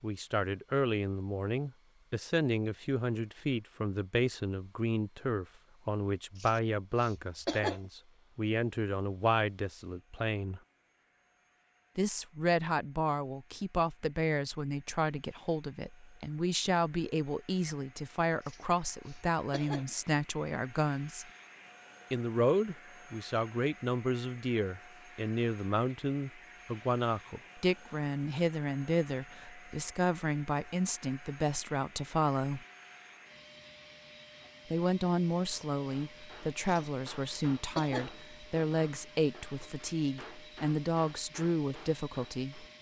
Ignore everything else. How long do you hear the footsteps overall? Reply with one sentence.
You can't hear the footsteps here.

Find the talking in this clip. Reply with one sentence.
You can hear the talking from 0.0 to 10.6 s, from 11.9 to 21.2 s, from 22.1 to 32.6 s and from 34.7 to 42.6 s.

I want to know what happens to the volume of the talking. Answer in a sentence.
The loudness of the talking stays about the same.